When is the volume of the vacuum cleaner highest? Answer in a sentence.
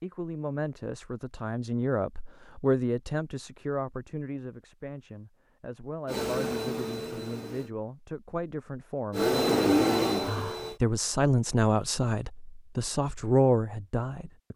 The loudest moment of the vacuum cleaner is at 10 seconds.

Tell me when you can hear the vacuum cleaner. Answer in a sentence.
The vacuum cleaner can be heard from 6.0 to 7.7 s and from 9.1 to 10.8 s.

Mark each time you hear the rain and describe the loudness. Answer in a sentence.
The rain can't be heard in this clip.